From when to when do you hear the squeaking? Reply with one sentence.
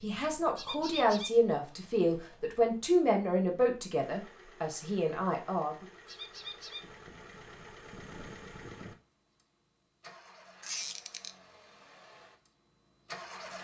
You can hear the squeaking from 0.6 to 1.3 s, from 6.0 to 6.8 s and from 10.6 to 11.3 s.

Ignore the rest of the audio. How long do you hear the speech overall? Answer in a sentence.
The speech can be heard for 6 seconds in total.